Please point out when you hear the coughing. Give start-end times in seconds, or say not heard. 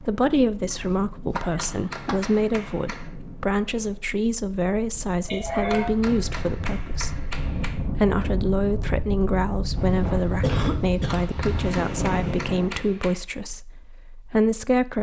0.7-2.4, 5.2-6.0, 10.4-11.3.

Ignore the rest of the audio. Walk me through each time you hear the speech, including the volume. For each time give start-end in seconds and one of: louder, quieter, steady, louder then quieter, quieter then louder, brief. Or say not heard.
0.0-14.9 steady.